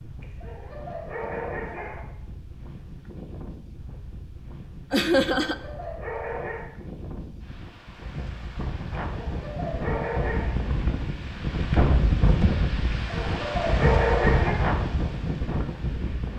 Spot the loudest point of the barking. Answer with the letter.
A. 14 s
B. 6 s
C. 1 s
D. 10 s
A.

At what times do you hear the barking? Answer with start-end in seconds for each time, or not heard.
0.2-2.0, 5.4-6.7, 9.1-10.6, 12.9-14.6.